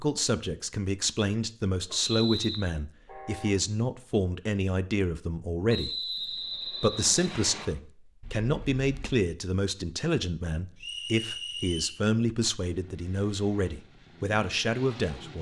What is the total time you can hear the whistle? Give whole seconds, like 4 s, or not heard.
4 s.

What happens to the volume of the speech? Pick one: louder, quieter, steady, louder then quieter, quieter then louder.
steady.